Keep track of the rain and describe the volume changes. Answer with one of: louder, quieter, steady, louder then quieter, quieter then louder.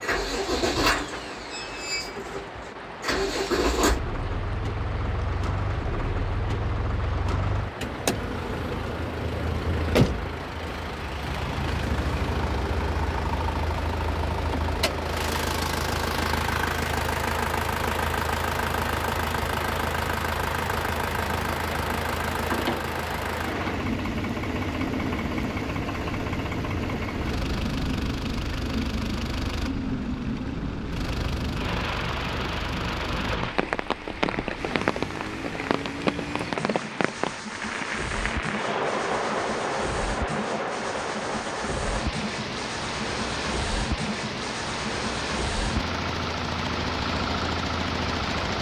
louder.